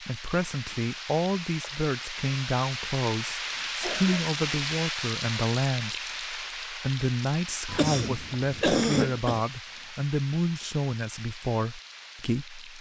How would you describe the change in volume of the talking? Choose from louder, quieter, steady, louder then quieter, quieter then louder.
steady.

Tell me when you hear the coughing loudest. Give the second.
9 s.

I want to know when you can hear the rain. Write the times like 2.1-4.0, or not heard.
0.0-12.7.